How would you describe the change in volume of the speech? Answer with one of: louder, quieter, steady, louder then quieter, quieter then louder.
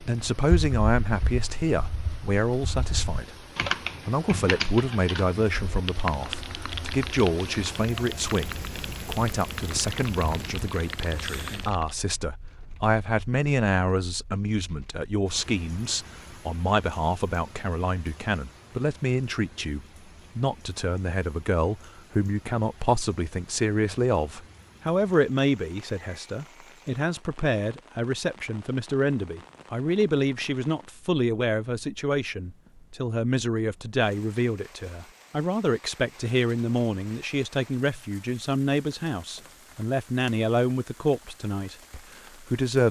steady.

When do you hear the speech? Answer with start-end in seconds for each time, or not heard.
0.0-3.4, 4.0-42.8.